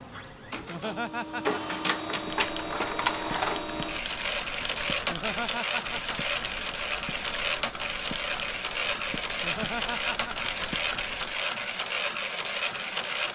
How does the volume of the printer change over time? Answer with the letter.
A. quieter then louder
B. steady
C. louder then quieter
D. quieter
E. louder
B.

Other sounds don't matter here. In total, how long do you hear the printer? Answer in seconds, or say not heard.
13 s.